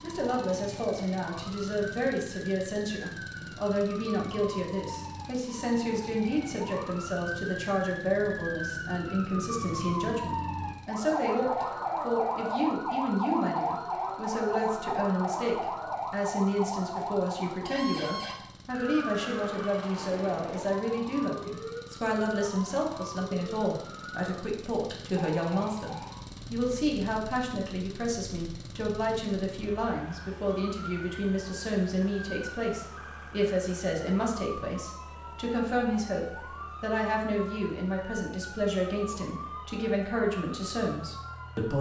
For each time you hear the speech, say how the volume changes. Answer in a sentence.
You can hear the speech from 0.0 to 41.7 s, at a steady volume.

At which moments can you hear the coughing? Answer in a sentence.
You can't hear the coughing here.